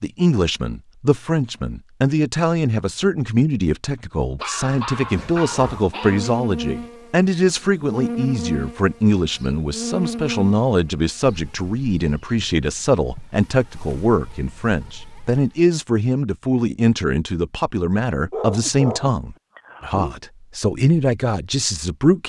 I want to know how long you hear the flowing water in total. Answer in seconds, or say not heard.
not heard.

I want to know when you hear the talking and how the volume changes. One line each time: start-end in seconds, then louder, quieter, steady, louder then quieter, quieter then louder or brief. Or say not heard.
0.0-22.2 steady.